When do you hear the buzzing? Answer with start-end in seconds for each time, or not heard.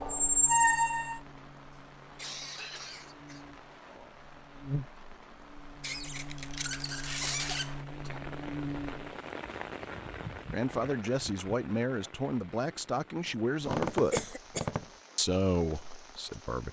0.0-9.2.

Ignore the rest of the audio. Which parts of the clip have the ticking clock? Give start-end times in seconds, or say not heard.
not heard.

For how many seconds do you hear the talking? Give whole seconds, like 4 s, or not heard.
5 s.